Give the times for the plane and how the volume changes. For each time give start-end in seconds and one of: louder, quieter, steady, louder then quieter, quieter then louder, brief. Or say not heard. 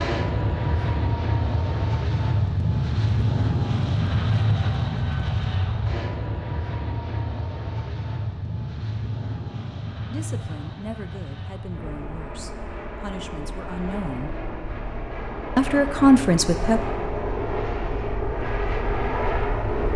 0.0-19.9 quieter then louder.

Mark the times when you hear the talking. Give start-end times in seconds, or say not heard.
10.1-14.3, 15.6-16.9.